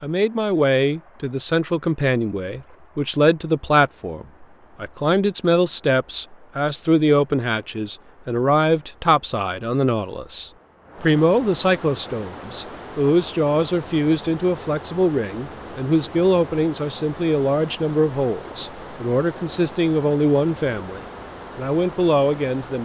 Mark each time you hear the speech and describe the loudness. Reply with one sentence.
The speech can be heard from 0.0 to 22.8 s, at a steady volume.